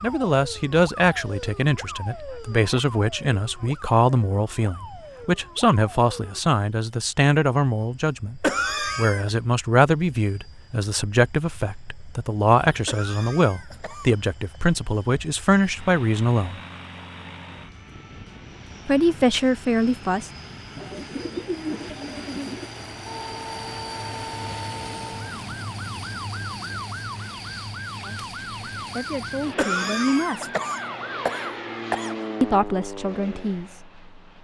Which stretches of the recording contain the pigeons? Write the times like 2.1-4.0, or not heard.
20.8-22.7.